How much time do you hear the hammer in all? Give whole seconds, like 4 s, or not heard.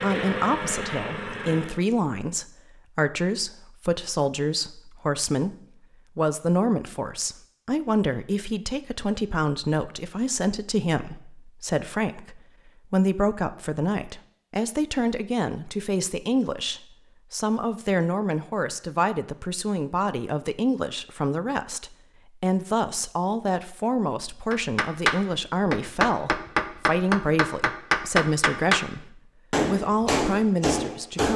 7 s.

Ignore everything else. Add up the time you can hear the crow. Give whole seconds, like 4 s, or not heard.
not heard.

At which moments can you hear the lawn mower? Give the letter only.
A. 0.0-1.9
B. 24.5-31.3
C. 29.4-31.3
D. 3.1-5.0
A.